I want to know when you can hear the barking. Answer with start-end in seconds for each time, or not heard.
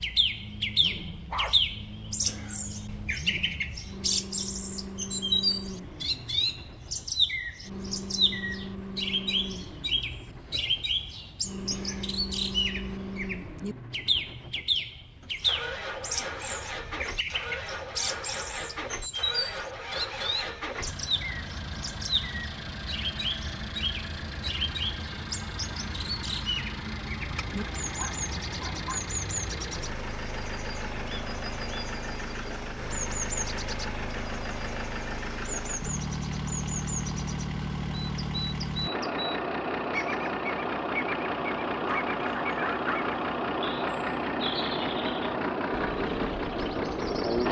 0.8-1.6, 27.9-29.0, 41.9-43.1.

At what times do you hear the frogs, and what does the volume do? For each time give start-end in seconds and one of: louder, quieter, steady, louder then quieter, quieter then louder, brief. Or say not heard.
not heard.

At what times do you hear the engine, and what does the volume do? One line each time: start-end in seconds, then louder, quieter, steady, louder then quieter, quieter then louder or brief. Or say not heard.
0.0-47.4 louder.